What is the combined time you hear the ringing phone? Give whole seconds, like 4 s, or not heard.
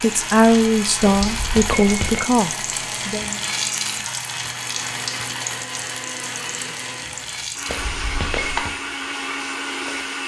2 s.